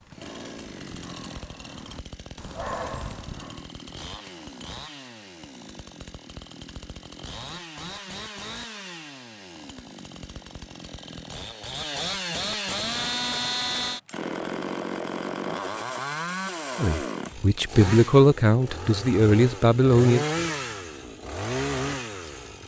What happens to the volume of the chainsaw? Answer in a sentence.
The volume of the chainsaw goes up.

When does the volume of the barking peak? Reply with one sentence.
The loudest moment of the barking is at 3 seconds.